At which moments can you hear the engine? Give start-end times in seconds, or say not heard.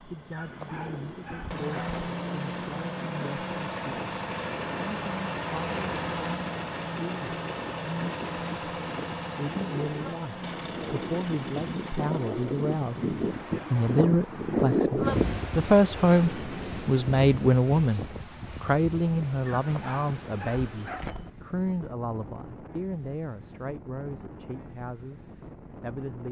0.0-14.1.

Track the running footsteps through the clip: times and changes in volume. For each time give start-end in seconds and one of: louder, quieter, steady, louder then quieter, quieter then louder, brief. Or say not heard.
not heard.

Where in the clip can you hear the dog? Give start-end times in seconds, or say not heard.
0.3-2.1, 19.4-21.3.